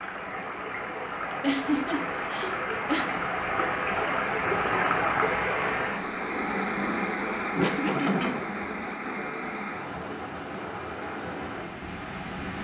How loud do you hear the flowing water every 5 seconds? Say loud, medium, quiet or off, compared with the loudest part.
loud, loud, medium.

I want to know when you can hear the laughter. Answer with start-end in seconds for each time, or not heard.
1.4-3.1, 7.5-8.4.